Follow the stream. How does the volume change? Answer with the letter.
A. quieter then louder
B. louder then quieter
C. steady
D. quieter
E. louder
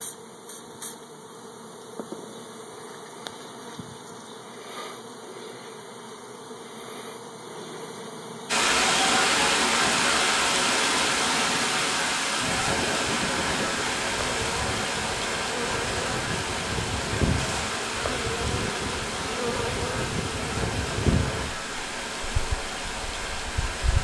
D.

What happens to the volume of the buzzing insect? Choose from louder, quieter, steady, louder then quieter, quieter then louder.
louder.